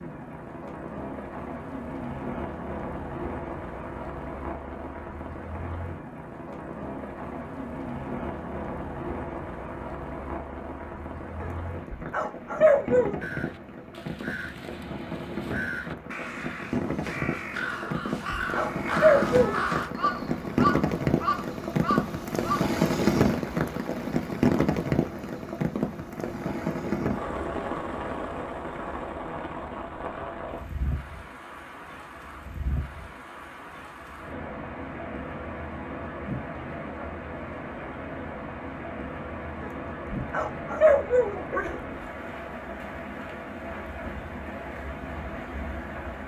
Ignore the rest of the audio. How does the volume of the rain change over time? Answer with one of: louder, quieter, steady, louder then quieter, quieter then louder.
louder then quieter.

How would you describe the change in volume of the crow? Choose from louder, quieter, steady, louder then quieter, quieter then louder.
louder.